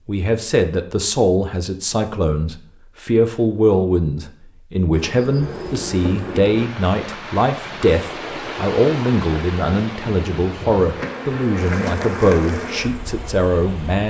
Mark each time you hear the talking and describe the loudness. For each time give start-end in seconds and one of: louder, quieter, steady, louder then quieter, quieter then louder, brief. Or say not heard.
0.1-14.0 steady.